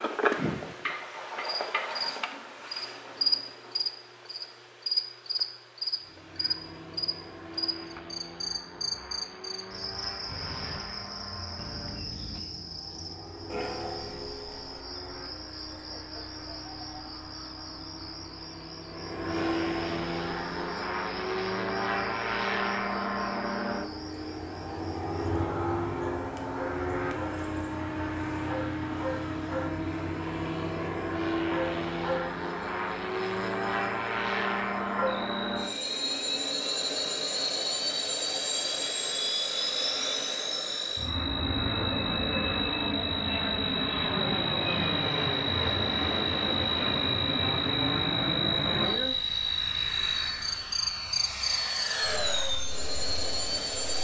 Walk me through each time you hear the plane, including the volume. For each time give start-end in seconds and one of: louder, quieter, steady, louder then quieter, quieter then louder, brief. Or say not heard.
6.0-53.9 louder.